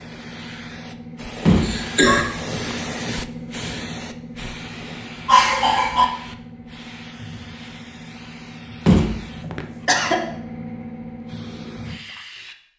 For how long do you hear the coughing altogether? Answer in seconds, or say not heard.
2 s.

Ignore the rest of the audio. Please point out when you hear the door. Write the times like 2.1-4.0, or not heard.
1.4-2.8, 8.8-10.2.